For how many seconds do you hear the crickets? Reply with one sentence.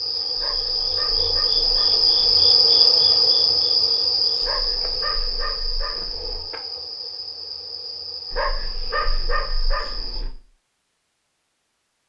You can hear the crickets for 10 seconds altogether.